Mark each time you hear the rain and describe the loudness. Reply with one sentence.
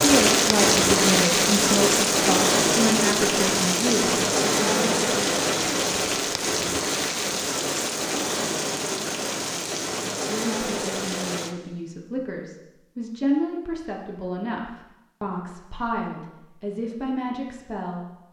The rain can be heard from 0.0 to 11.6 s, getting quieter.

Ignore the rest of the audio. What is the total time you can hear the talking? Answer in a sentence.
You can hear the talking for 14 seconds altogether.